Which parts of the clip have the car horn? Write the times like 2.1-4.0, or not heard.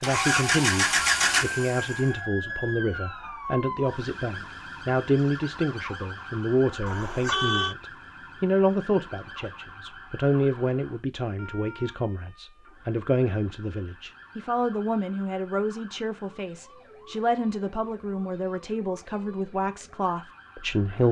6.8-7.8.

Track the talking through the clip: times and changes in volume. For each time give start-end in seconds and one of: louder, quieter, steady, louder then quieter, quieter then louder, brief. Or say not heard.
0.0-21.0 steady.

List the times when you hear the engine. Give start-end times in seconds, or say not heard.
0.0-2.1.